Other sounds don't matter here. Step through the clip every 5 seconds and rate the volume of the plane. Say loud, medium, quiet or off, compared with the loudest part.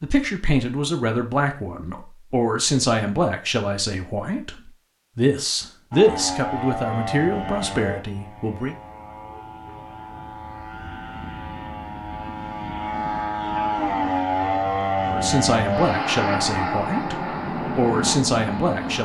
off, medium, loud, loud.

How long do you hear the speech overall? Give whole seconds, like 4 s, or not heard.
13 s.